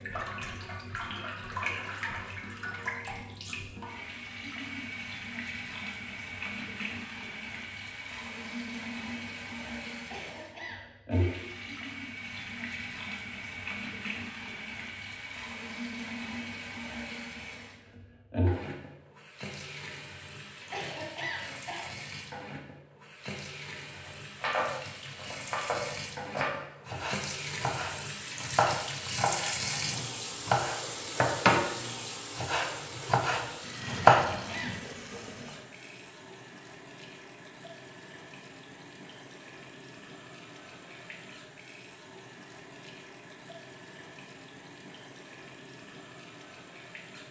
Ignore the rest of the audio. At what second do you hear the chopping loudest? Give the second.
34 s.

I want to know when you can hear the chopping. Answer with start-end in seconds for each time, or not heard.
24.1-31.7, 32.4-34.2.